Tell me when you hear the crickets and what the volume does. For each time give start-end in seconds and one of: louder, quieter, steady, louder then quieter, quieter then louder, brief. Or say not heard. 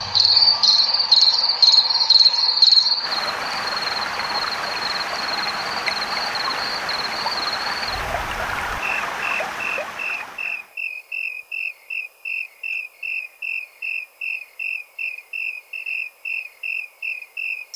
0.0-17.7 quieter.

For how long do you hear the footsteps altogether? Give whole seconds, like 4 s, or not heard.
not heard.